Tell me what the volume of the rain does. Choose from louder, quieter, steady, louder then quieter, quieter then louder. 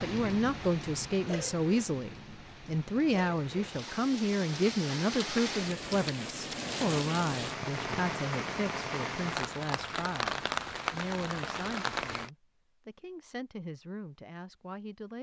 louder.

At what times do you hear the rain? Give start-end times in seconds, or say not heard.
0.0-12.3.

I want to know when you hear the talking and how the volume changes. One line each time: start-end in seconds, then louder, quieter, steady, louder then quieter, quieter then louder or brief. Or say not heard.
0.0-15.1 quieter.